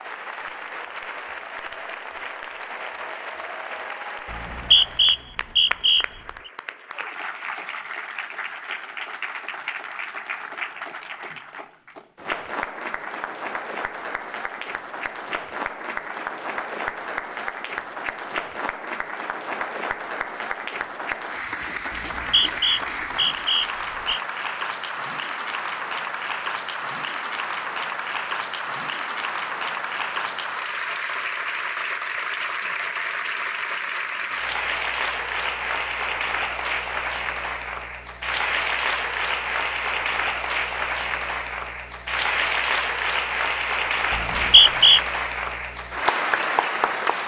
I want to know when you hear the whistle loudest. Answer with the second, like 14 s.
45 s.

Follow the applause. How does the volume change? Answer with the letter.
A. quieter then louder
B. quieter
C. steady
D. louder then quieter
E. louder
E.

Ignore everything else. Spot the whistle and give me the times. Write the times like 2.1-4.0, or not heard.
4.3-6.0, 21.9-24.2, 44.1-45.0.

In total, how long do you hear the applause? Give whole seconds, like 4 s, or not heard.
47 s.